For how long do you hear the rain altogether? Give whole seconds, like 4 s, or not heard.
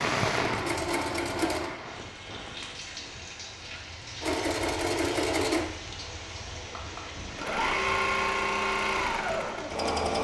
10 s.